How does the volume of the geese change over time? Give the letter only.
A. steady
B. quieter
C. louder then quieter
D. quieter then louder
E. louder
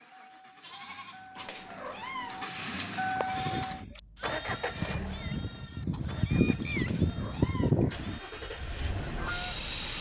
C.